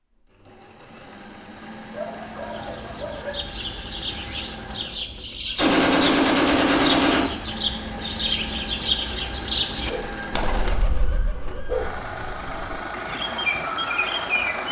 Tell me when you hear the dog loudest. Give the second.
12 s.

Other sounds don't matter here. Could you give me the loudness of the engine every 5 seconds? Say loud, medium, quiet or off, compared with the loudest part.
medium, loud, loud.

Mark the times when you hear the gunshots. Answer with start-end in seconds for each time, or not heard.
5.5-7.2.